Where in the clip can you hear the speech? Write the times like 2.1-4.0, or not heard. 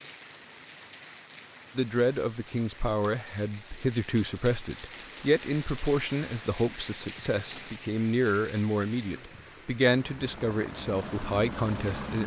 1.8-12.2.